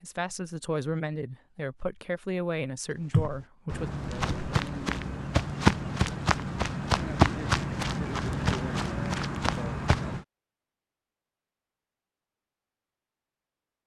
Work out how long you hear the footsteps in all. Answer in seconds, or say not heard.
7 s.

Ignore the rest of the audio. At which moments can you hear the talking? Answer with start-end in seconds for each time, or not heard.
0.0-3.9.